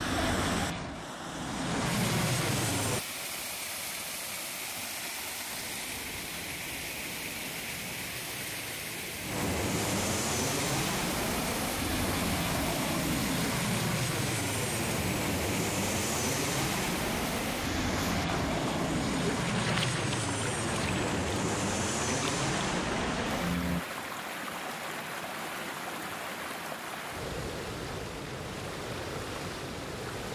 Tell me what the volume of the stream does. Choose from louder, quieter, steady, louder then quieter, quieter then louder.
steady.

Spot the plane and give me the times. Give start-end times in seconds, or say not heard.
0.0-3.0, 5.5-23.9.